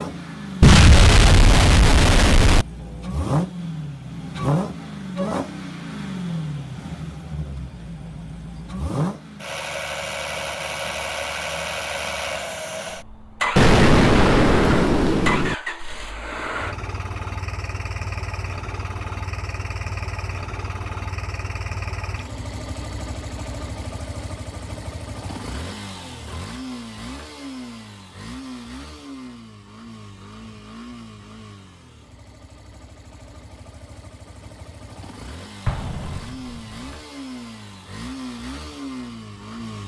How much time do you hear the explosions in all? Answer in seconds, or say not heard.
5 s.